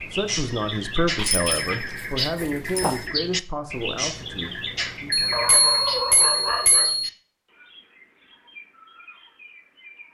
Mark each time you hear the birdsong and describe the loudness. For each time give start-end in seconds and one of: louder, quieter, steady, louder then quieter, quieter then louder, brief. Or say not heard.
0.0-10.0 quieter.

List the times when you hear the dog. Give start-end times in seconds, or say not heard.
1.1-3.0, 5.3-7.0.